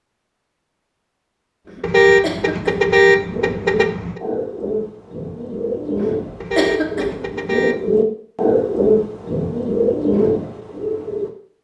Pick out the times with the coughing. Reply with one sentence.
You can hear the coughing from 1.6 to 3.0 s and from 6.0 to 7.3 s.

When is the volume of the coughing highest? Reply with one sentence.
The loudest moment of the coughing is at 7 seconds.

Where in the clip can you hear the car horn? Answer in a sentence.
The car horn can be heard from 1.8 to 4.2 s and from 6.4 to 7.9 s.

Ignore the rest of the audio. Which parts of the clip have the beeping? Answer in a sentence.
The beeping can't be heard in this clip.